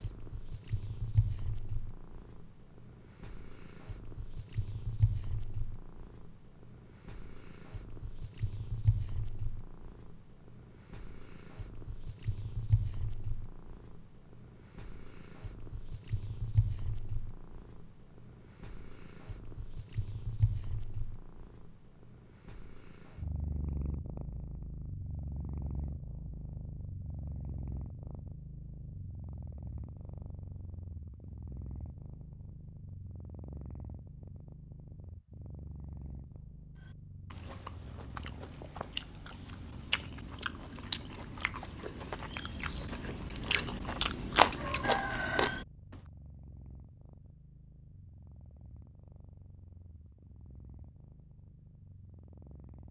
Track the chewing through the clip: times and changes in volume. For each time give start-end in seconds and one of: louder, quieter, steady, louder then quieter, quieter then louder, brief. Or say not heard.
36.8-46.0 louder.